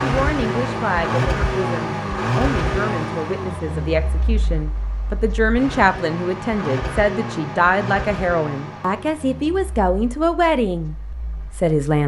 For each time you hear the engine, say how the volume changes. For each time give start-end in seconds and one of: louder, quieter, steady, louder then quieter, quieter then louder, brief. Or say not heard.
0.0-11.8 quieter.